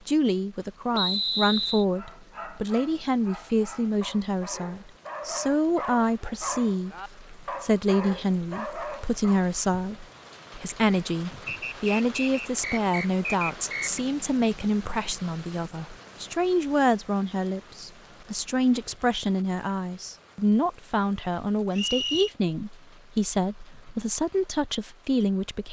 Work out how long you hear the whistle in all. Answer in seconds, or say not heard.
4 s.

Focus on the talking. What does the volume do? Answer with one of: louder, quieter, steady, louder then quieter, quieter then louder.
steady.